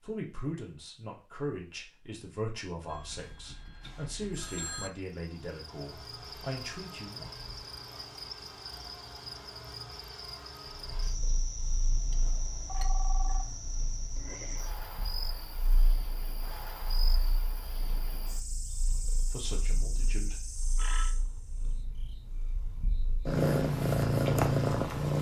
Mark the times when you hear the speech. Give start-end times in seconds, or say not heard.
0.0-7.3, 18.9-20.4.